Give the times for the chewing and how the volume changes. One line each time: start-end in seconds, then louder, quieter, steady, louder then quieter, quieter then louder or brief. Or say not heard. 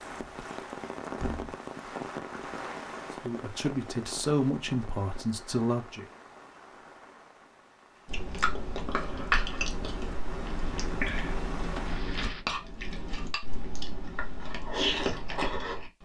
8.1-16.0 quieter then louder.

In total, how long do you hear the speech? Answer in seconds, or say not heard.
3 s.